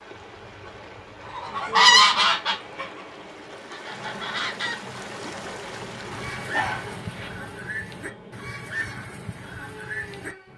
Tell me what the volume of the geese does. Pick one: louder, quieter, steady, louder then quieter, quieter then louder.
quieter.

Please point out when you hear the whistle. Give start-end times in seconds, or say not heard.
not heard.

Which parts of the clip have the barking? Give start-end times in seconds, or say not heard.
6.3-7.3.